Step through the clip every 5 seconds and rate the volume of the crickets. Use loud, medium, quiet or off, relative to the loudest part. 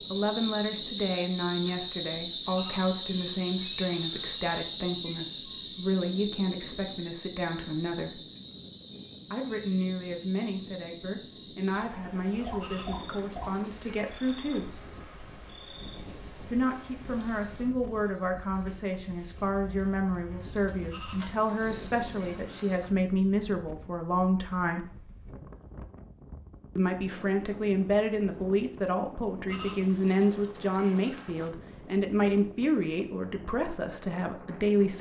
loud, medium, quiet, quiet, quiet, off, off.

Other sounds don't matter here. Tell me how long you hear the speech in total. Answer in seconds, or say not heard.
30 s.